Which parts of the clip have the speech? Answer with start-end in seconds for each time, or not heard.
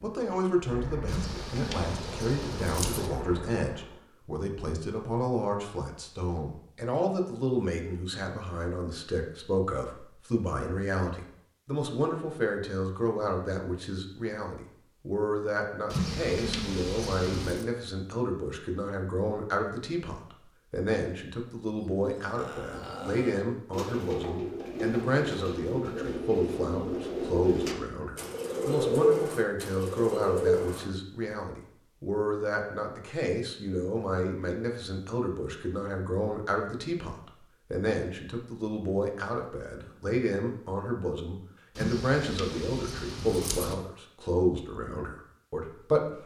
0.0-46.1.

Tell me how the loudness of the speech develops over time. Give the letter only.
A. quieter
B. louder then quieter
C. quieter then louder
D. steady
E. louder
D.